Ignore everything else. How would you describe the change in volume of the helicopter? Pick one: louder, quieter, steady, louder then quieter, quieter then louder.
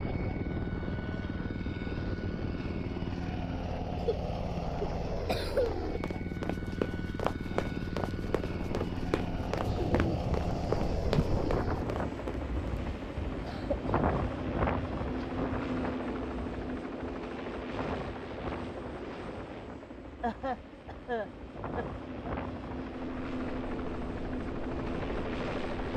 steady.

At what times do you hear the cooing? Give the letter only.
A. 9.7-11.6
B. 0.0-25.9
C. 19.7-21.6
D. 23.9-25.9
A.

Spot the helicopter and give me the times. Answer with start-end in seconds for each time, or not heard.
0.0-25.9.